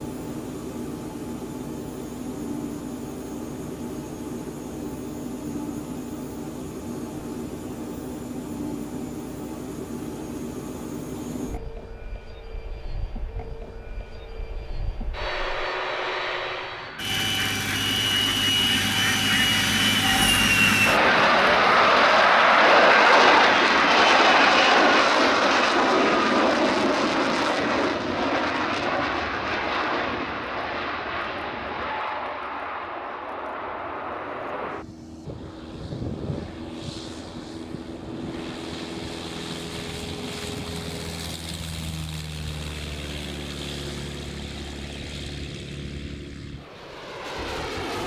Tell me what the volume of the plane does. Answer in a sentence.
The volume of the plane goes up, then down.